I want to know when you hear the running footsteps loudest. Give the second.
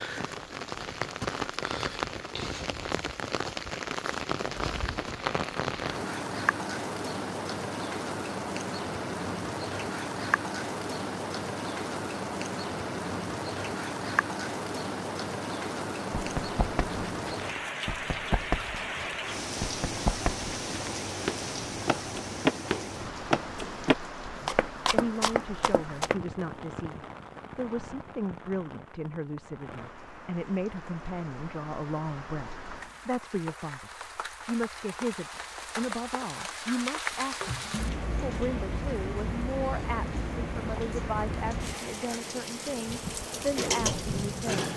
23 s.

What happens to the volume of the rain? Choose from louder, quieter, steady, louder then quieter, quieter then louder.
quieter then louder.